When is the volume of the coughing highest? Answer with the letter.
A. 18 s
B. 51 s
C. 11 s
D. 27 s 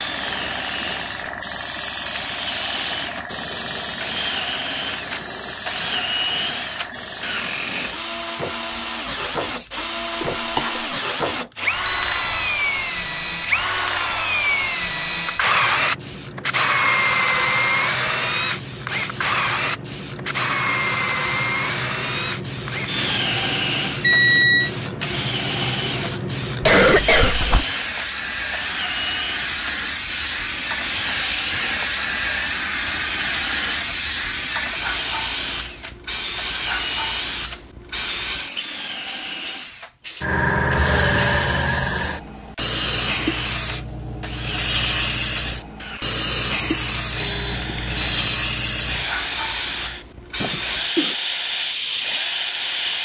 D.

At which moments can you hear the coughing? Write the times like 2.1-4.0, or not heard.
10.2-10.8, 26.6-27.6, 50.4-51.1.